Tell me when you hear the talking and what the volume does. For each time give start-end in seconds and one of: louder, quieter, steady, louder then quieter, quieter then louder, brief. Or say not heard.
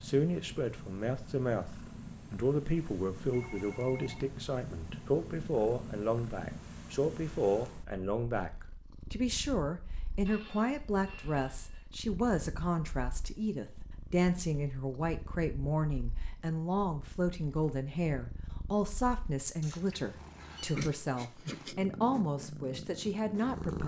0.0-23.8 steady.